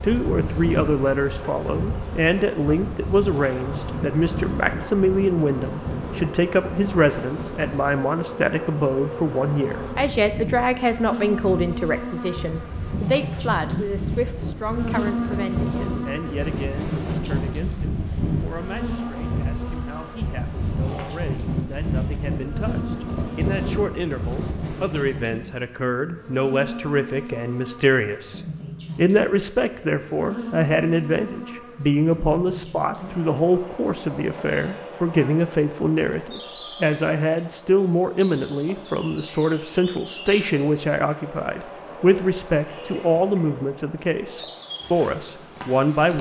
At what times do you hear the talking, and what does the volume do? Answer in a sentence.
You can hear the talking from 0.0 to 46.1 s, getting quieter then louder.